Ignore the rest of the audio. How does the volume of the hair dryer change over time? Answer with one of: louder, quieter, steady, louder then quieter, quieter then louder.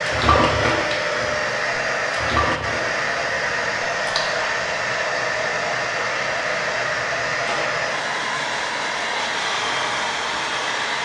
steady.